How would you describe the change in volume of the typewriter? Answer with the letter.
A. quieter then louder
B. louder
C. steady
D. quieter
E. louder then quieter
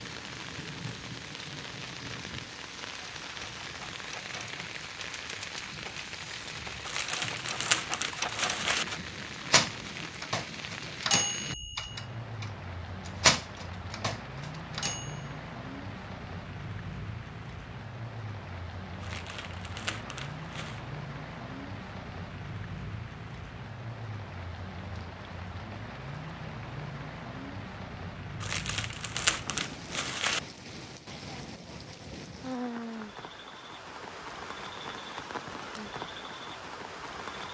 B.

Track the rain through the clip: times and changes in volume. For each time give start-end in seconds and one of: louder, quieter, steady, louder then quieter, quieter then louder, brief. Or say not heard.
0.0-37.4 steady.